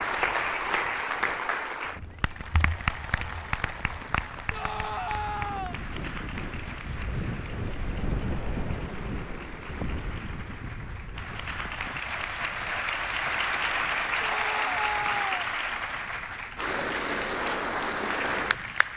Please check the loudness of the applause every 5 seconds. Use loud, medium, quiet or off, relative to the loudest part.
loud, quiet, loud, loud.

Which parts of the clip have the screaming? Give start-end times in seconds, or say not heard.
4.5-5.8, 14.2-15.5.